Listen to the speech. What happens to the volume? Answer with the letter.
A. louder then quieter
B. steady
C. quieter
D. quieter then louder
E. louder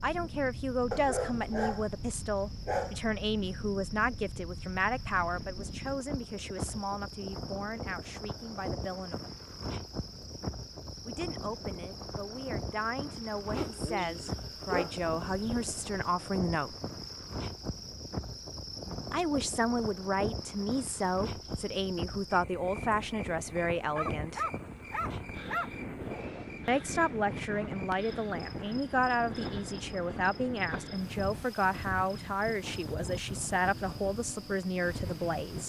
D.